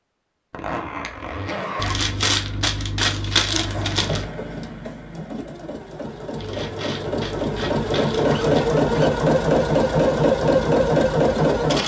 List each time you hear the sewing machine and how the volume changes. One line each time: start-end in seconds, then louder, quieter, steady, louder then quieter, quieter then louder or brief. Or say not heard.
3.5-11.8 louder.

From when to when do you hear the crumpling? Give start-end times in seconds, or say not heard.
1.8-4.2, 6.3-8.7.